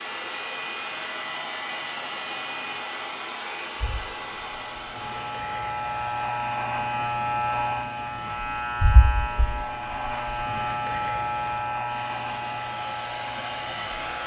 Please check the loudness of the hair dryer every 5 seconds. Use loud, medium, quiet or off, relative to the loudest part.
loud, medium, loud.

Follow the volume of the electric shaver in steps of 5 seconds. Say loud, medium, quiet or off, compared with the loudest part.
medium, loud, loud.